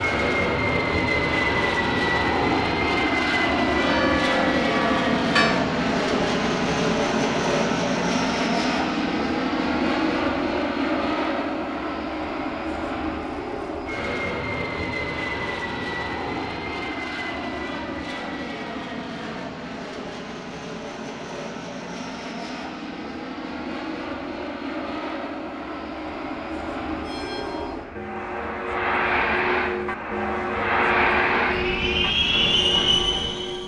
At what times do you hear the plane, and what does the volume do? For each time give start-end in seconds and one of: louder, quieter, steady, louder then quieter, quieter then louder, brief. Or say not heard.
0.0-33.6 quieter then louder.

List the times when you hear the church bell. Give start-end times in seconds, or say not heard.
3.8-5.6, 27.1-33.6.